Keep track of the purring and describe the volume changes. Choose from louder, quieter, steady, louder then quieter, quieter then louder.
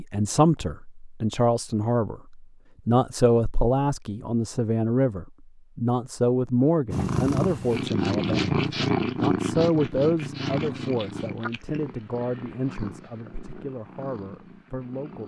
quieter.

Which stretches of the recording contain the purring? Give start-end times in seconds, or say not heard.
6.9-15.2.